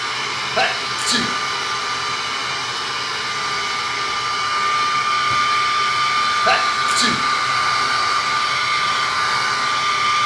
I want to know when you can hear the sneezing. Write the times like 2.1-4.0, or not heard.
0.6-1.2, 6.5-7.2.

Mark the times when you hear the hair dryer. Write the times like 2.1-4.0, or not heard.
0.0-10.2.